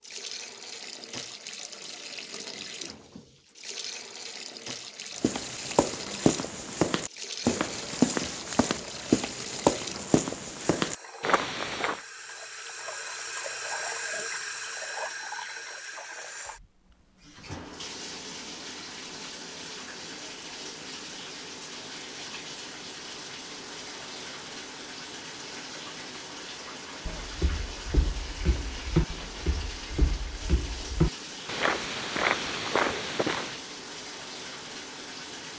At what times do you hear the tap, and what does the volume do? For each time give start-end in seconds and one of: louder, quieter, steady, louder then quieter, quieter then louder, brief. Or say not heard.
0.0-35.5 steady.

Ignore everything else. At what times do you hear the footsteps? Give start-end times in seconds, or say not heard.
5.2-12.0, 27.1-33.6.